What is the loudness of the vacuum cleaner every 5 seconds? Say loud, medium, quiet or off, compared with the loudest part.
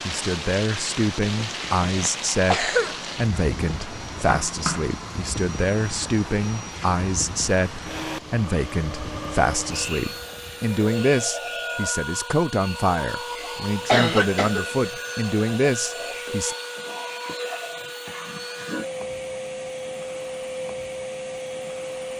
medium, loud, loud, loud, loud.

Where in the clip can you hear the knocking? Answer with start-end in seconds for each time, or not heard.
4.3-4.9.